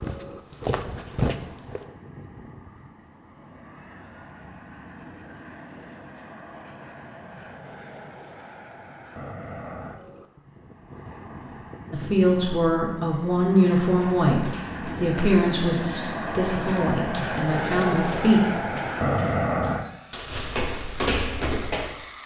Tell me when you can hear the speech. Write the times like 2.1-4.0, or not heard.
11.9-18.4.